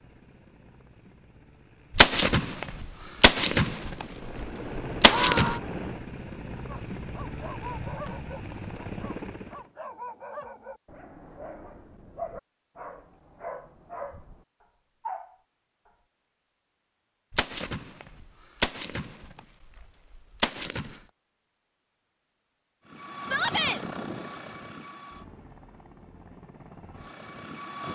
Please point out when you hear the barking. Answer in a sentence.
The barking can be heard from 6.7 to 15.9 s.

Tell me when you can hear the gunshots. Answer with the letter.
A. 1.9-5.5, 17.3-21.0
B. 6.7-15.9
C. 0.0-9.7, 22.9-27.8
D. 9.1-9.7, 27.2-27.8
A.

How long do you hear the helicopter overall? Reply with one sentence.
The helicopter can be heard for 15 seconds in total.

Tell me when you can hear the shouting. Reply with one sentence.
You can hear the shouting from 5.0 to 5.6 s and from 23.2 to 23.8 s.